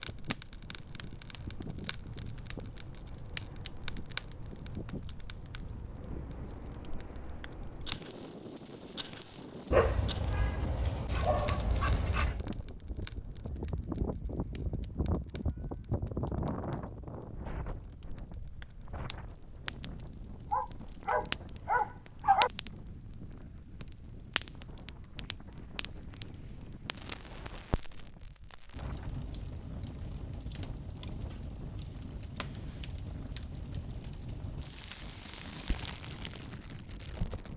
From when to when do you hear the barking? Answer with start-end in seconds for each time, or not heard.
9.7-12.4, 20.5-22.5.